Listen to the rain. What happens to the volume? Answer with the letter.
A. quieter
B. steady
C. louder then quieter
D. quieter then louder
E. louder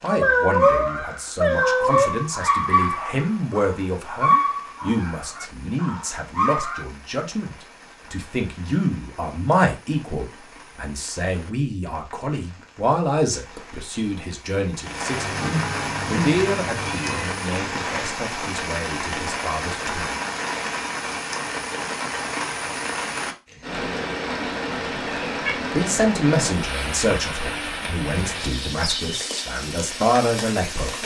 E.